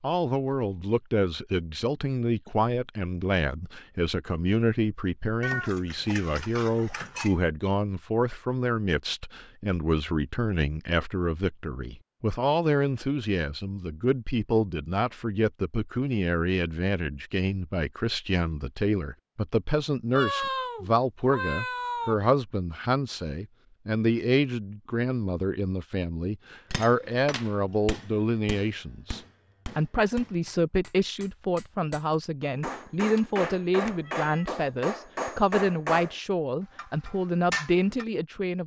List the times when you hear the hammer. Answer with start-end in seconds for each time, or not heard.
26.7-36.1, 36.8-38.0.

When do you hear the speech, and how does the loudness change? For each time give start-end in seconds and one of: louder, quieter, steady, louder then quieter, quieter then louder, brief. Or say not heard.
0.0-38.6 steady.